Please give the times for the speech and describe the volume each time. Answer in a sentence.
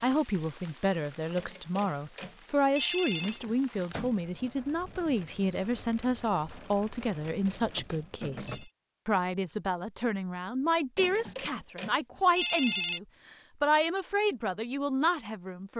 The speech can be heard from 0.0 to 15.7 s, at a steady volume.